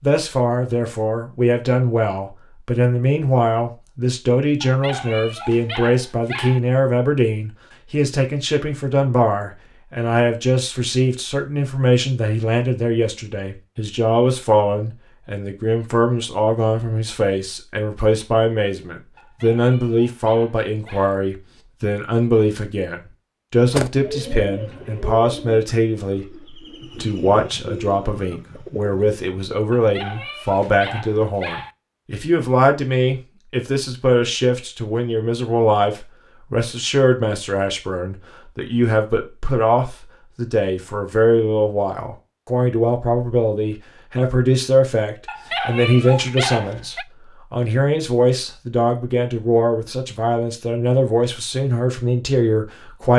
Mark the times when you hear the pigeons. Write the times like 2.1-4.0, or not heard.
23.7-29.1.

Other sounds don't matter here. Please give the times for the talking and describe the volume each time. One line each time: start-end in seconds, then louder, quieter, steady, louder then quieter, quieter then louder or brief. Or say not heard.
0.0-53.1 steady.